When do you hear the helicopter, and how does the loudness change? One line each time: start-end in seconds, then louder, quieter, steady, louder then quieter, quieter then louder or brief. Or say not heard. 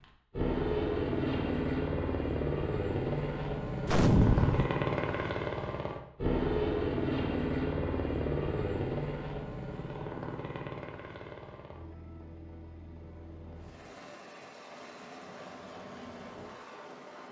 0.0-17.2 quieter.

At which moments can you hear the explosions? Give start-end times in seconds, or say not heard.
3.9-4.7.